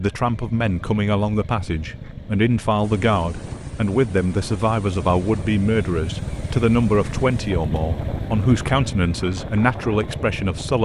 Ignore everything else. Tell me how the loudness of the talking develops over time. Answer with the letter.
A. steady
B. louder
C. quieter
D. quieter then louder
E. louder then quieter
A.